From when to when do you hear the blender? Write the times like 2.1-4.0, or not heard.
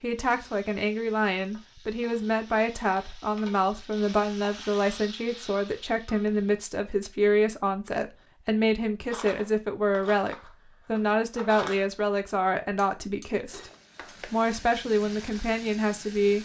not heard.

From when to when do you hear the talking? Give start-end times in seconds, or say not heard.
0.0-16.3.